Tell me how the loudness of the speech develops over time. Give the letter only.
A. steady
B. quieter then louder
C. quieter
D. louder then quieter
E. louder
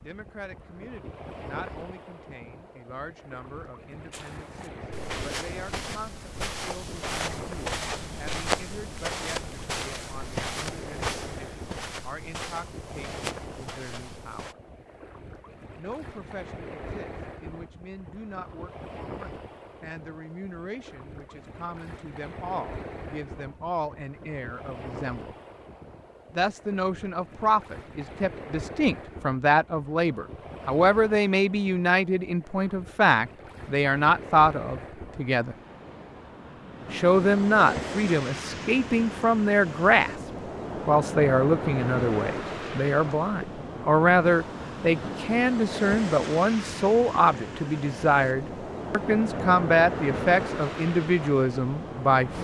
E.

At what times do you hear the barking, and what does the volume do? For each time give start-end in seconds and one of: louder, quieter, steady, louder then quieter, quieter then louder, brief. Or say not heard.
not heard.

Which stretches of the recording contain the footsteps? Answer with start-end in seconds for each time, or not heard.
4.1-14.6.